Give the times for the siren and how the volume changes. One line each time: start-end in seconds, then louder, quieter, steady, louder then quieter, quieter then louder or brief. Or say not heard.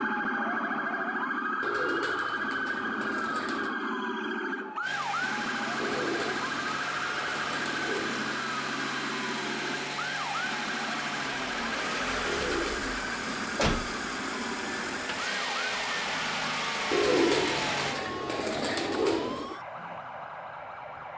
0.0-21.1 quieter.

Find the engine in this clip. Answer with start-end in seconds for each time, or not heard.
4.8-18.0.